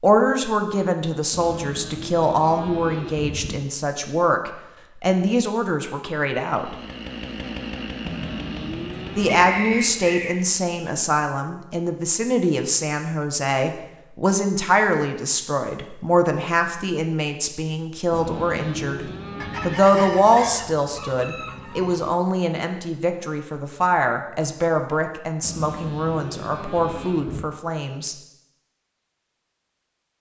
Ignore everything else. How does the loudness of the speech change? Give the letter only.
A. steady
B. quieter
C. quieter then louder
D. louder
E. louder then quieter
A.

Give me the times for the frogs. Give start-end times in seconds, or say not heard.
not heard.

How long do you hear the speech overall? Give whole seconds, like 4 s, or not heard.
25 s.